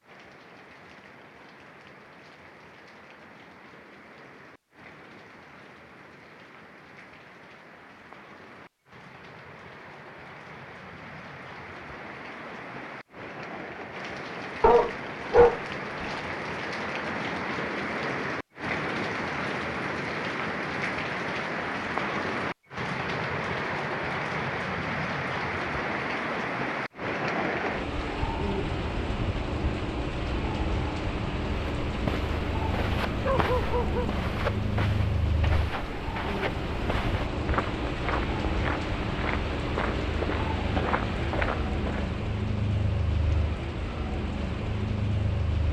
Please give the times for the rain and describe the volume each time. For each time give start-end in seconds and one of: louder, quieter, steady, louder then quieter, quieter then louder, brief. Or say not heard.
0.0-45.6 louder.